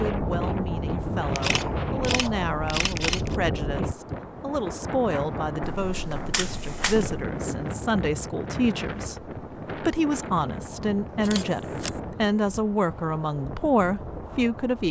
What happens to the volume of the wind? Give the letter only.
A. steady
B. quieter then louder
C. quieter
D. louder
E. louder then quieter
C.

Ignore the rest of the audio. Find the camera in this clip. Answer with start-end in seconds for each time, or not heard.
1.3-3.4, 5.6-7.3, 11.2-12.0.